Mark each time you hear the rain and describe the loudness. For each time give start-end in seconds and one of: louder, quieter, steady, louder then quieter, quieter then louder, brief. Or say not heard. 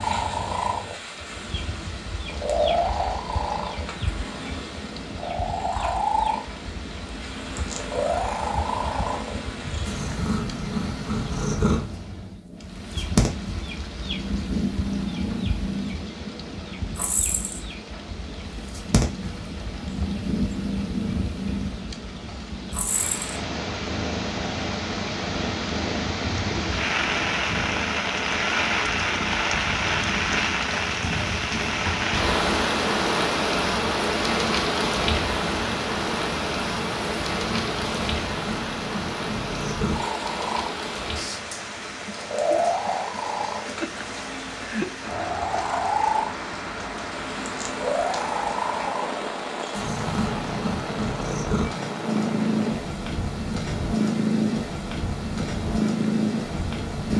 0.0-57.1 louder then quieter.